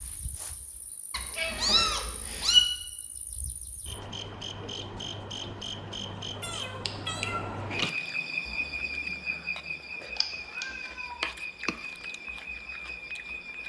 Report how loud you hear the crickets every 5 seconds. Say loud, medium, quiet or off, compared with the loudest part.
medium, loud, loud.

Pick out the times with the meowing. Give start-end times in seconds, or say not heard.
1.1-2.6, 6.0-7.5, 10.2-11.2.